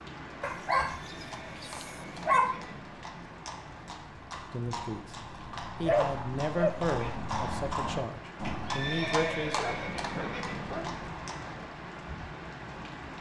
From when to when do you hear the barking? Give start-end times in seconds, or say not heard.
0.4-2.5, 5.8-7.1, 9.6-11.1.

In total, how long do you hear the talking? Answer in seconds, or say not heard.
5 s.